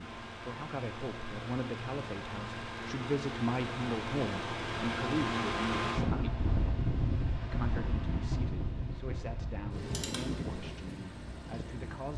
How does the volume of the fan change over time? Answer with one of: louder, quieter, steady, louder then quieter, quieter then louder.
louder then quieter.